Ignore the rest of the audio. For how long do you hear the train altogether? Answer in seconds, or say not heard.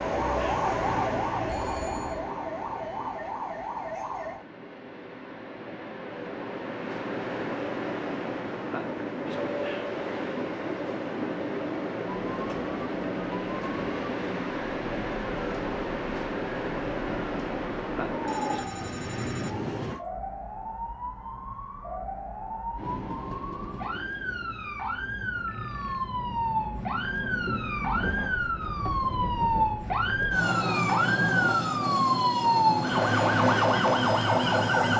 32 s.